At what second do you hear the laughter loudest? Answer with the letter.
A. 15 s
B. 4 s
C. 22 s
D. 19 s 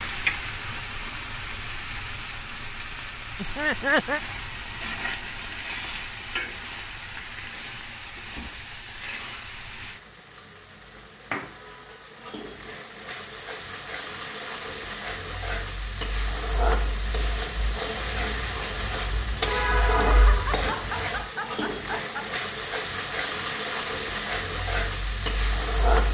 B.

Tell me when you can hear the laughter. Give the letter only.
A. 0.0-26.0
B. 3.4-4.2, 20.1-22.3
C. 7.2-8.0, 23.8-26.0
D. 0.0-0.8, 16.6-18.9
B.